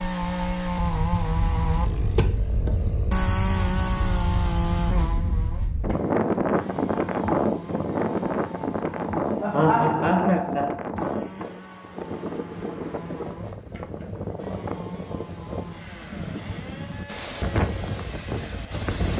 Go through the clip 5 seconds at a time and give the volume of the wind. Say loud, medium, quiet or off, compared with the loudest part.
medium, loud, medium, medium.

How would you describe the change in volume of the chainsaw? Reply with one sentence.
The loudness of the chainsaw goes down.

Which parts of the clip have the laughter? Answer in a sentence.
The laughter can be heard from 9.4 to 10.8 s.